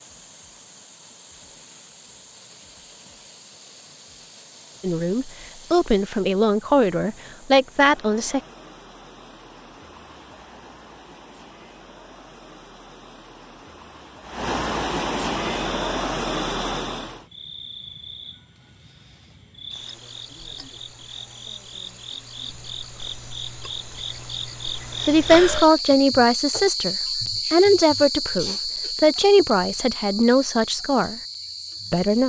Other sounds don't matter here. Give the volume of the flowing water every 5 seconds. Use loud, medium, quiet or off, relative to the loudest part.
quiet, quiet, medium, loud, off, off, off.